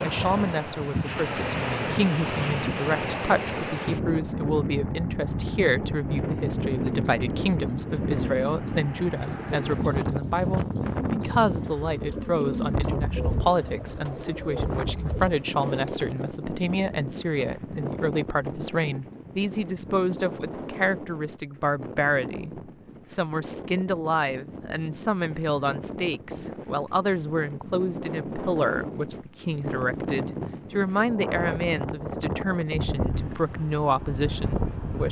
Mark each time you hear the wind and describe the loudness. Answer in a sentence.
The wind can be heard from 0.0 to 35.0 s, getting quieter then louder.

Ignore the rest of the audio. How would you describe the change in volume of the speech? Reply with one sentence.
The volume of the speech stays about the same.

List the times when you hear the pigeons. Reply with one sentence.
The pigeons can be heard from 6.5 to 16.4 s.